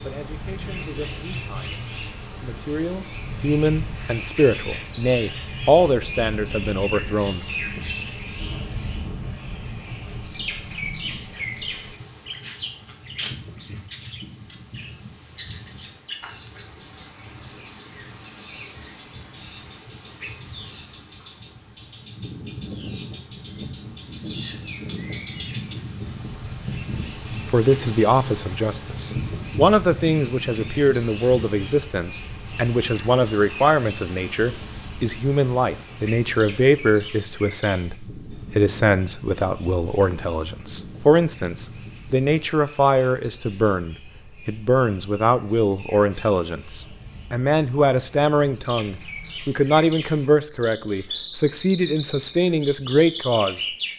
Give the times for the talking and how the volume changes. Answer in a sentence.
The talking can be heard from 0.0 to 7.8 s, getting louder then quieter; and from 27.4 to 53.6 s, at a steady volume.